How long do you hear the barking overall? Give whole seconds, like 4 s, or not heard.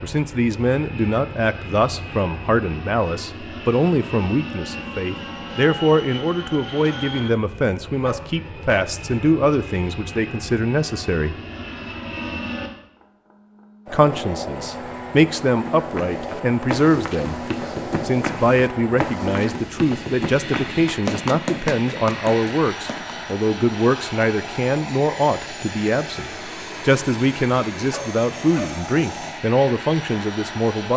2 s.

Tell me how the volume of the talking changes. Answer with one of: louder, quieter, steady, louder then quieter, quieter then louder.
steady.